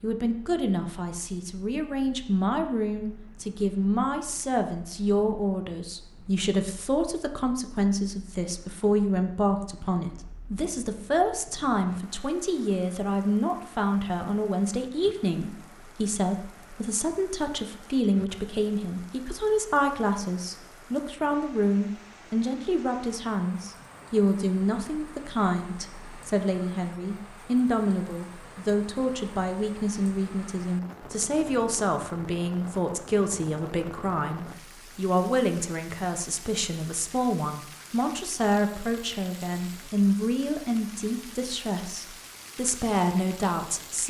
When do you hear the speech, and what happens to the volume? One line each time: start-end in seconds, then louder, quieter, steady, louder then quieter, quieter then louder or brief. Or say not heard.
0.0-44.0 steady.